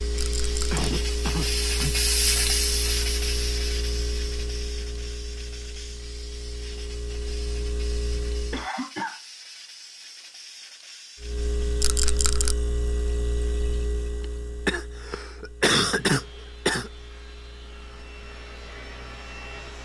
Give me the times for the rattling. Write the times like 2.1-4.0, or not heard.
0.1-0.8, 11.8-12.6.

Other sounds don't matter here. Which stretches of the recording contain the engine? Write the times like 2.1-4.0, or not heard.
0.0-8.7, 11.2-19.7.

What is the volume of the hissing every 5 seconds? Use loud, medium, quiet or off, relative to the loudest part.
loud, quiet, quiet, off.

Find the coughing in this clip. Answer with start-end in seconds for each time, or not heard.
0.1-2.0, 8.5-9.2, 14.2-16.9.